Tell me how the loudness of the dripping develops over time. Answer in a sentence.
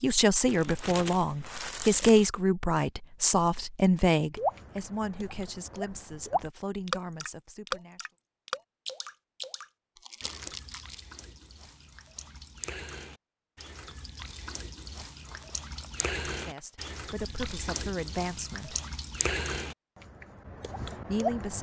The loudness of the dripping goes down, then up.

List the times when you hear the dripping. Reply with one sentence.
You can hear the dripping from 4.3 to 21.5 s.